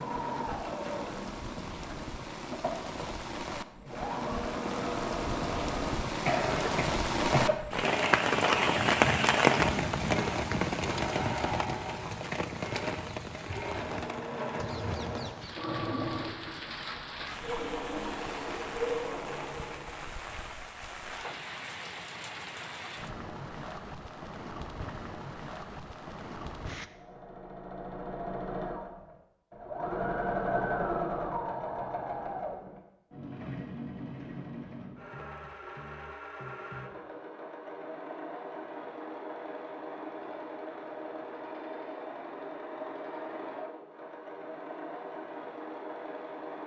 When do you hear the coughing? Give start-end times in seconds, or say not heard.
6.2-7.5.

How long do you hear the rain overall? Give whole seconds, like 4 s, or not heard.
27 s.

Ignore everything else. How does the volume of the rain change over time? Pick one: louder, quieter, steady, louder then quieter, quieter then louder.
louder then quieter.